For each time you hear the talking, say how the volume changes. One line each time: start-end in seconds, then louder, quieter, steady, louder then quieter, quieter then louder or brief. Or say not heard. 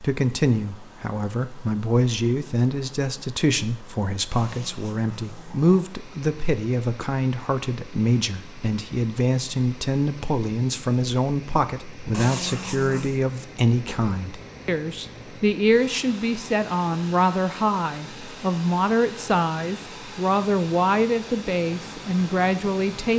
0.0-23.1 steady.